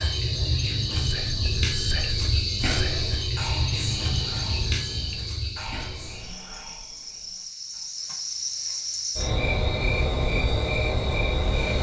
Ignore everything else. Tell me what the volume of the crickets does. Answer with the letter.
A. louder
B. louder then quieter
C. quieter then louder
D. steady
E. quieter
C.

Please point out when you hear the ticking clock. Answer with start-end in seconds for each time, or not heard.
not heard.